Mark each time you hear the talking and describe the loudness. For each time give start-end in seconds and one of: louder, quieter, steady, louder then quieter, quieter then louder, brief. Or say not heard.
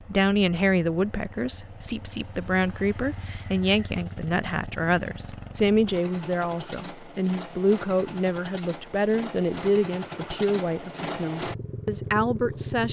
0.0-12.8 steady.